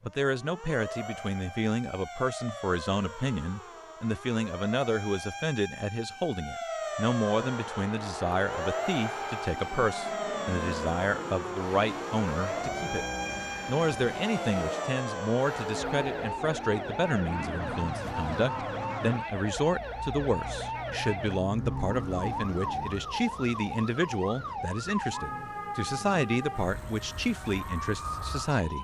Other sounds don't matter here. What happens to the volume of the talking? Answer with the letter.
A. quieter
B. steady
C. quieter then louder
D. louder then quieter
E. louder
B.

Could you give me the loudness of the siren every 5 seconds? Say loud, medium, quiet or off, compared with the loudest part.
medium, loud, loud, loud, loud, loud.